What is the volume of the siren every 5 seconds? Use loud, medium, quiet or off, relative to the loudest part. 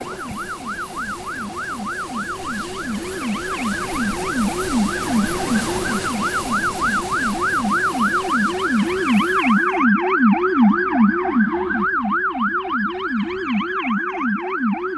medium, loud, loud.